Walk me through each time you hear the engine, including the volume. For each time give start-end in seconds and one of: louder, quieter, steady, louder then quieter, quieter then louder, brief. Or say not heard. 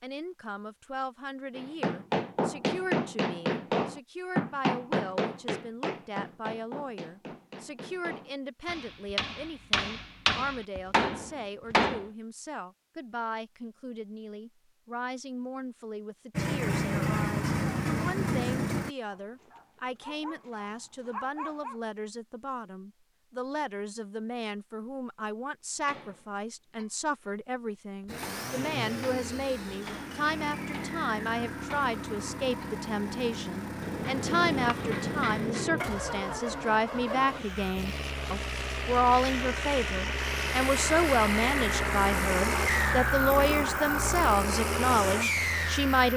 16.3-18.9 brief
28.1-46.1 louder.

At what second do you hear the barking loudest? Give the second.
21 s.